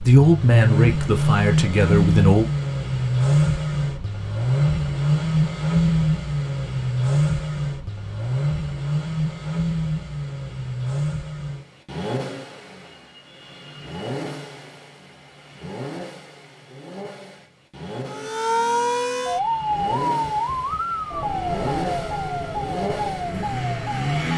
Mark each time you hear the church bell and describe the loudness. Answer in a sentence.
The church bell can't be heard in this clip.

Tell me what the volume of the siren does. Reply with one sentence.
The volume of the siren goes down.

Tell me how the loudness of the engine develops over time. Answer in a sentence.
The volume of the engine goes down, then up.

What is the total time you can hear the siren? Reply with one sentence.
The siren can be heard for 6 seconds in total.